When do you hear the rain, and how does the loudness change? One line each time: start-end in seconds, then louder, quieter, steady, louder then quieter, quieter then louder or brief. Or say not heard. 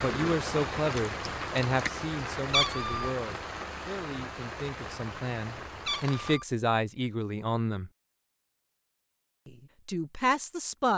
0.0-6.4 quieter.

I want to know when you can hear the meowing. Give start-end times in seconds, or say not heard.
2.5-3.1, 5.8-6.5.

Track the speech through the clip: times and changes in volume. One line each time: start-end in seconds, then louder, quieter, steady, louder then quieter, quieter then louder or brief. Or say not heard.
0.0-7.9 quieter then louder
9.4-10.9 brief.